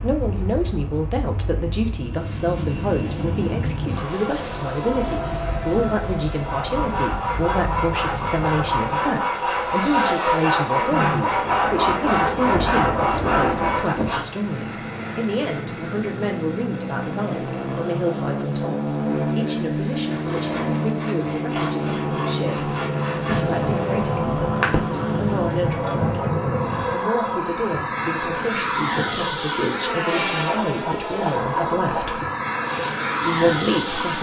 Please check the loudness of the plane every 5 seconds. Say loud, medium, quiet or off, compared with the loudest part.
medium, medium, medium, loud, loud, loud, loud.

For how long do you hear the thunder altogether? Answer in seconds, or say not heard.
7 s.